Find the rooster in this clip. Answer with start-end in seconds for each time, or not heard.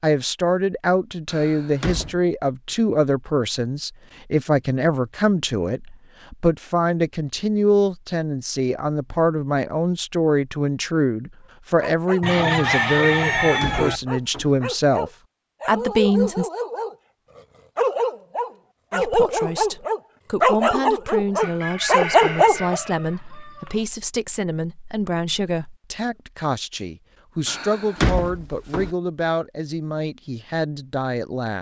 12.2-14.0, 21.4-23.9.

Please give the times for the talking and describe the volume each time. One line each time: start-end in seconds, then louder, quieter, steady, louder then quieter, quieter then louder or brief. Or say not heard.
0.0-16.5 steady
18.9-31.5 steady.